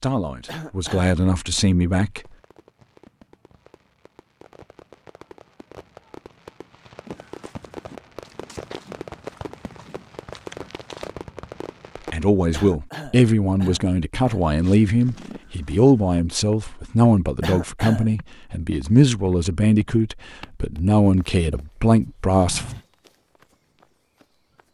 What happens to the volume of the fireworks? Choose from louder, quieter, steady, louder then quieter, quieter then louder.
louder.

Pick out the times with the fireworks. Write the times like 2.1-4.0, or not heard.
2.1-12.2.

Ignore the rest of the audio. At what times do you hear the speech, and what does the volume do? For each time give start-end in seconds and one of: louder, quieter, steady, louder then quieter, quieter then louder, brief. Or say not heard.
0.0-2.2 brief
12.1-22.6 steady.